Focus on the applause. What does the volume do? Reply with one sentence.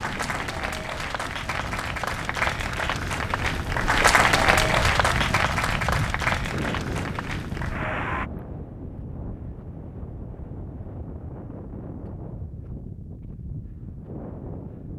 The volume of the applause goes up, then down.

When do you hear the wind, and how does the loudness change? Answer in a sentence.
You can hear the wind from 0.0 to 14.9 s, getting louder then quieter.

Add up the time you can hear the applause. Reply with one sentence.
The applause can be heard for 8 seconds in total.